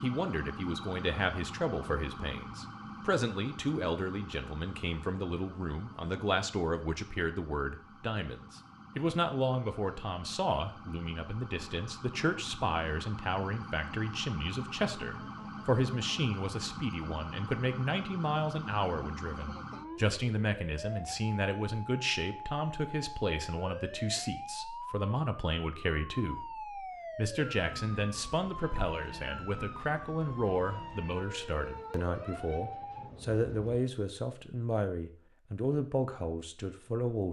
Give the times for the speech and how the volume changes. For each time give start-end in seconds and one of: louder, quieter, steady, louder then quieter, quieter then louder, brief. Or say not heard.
0.0-37.2 steady.